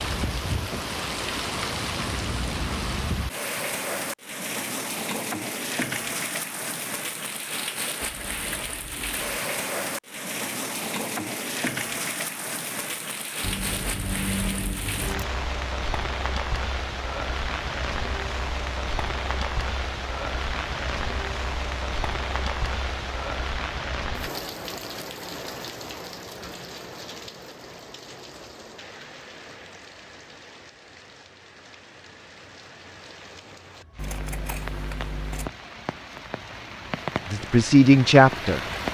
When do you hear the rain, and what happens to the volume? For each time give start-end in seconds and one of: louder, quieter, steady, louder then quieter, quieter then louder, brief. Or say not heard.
0.0-38.8 quieter.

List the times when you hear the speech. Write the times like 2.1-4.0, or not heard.
37.2-38.6.